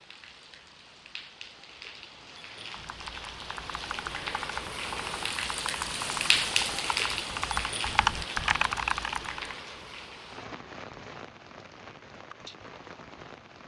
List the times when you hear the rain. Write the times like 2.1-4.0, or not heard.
0.0-13.6.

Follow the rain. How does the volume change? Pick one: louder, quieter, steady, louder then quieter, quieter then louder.
louder then quieter.